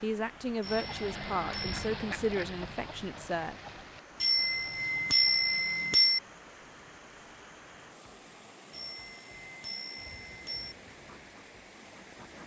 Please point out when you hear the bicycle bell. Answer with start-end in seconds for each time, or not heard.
0.6-1.9, 4.2-6.2, 8.7-10.8.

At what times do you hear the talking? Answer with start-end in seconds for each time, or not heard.
0.0-3.5.